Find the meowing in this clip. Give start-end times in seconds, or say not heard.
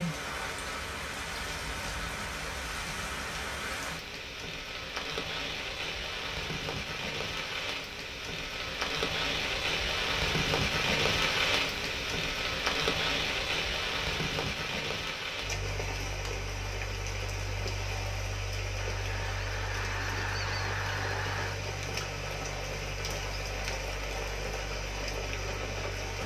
not heard.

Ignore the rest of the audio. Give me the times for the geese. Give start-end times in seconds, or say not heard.
18.8-21.6.